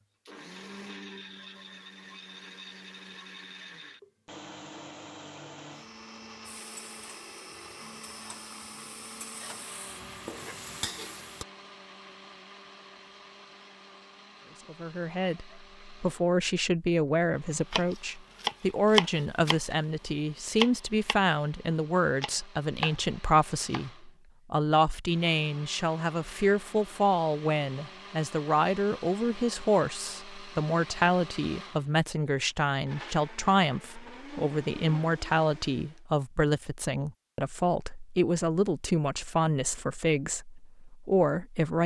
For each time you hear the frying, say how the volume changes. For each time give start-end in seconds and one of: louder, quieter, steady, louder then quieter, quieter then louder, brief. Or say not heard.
6.5-11.4 louder.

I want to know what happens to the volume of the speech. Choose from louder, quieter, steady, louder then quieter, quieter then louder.
steady.